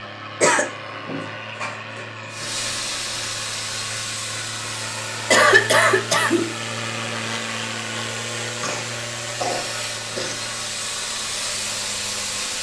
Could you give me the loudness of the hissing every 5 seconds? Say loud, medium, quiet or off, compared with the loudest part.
loud, medium, loud.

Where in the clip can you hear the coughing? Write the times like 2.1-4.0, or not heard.
0.4-2.5, 5.3-6.5, 8.6-10.4.